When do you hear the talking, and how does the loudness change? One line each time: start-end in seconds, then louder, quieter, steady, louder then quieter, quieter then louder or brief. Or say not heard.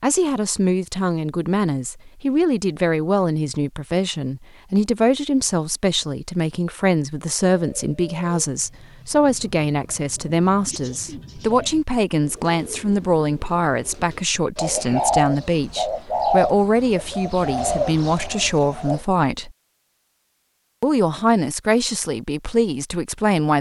0.0-19.5 steady
20.8-23.5 brief.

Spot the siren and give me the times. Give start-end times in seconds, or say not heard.
not heard.